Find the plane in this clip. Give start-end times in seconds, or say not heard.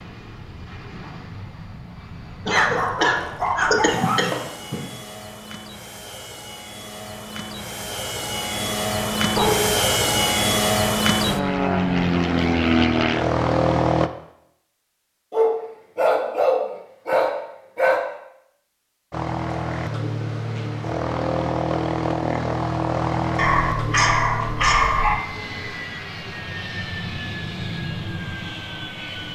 0.0-14.1, 19.1-29.3.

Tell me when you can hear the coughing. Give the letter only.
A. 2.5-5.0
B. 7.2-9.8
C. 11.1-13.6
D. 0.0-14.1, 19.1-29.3
A.